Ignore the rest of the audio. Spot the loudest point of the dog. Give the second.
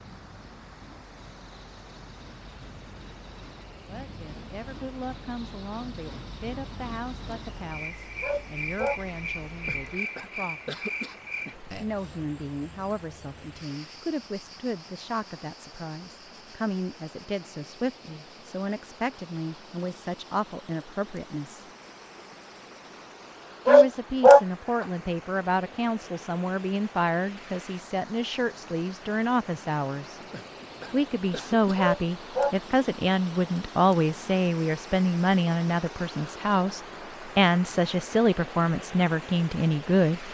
24 s.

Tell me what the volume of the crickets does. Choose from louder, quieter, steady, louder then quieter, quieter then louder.
louder then quieter.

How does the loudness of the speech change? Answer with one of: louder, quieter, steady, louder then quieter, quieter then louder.
louder.